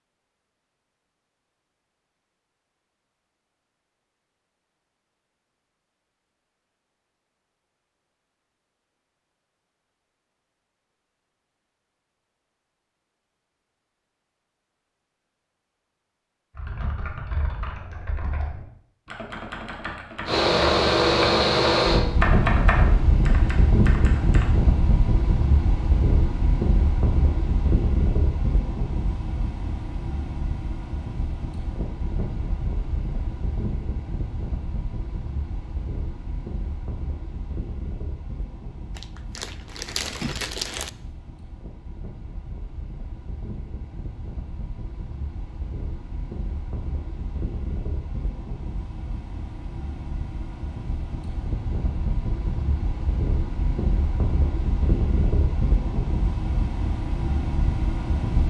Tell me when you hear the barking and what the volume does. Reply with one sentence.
The barking can't be heard in this clip.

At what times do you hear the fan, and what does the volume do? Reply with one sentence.
You can hear the fan from 20.2 to 58.4 s, getting quieter then louder.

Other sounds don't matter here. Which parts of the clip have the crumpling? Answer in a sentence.
The crumpling can be heard from 39.0 to 40.9 s.